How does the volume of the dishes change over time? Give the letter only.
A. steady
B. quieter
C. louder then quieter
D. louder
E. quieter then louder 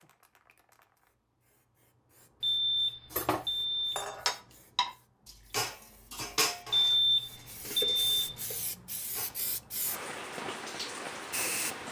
B.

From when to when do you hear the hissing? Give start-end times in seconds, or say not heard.
0.0-11.8.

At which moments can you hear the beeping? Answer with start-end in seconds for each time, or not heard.
2.4-4.2, 6.7-8.4.